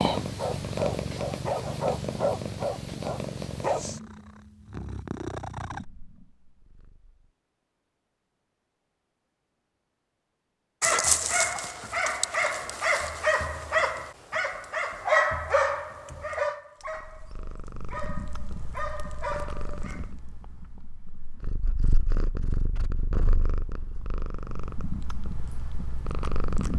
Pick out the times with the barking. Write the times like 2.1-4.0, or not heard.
0.0-3.8, 10.8-20.1.